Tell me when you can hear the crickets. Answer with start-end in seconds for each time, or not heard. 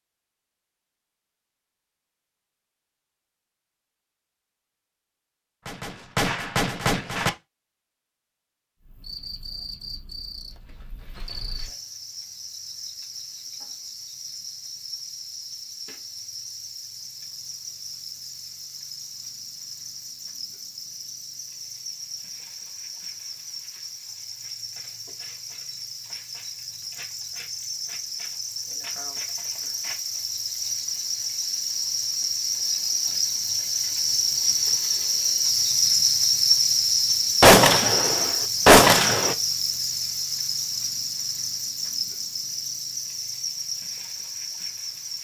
8.8-45.1.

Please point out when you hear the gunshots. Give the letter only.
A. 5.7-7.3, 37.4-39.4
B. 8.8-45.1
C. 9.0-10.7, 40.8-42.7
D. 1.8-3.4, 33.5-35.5
A.